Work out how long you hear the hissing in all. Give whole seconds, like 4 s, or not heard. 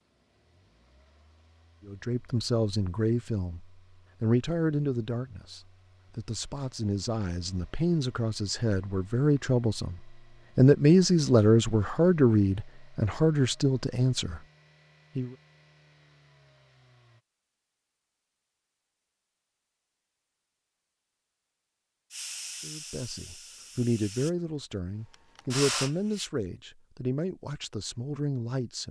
4 s.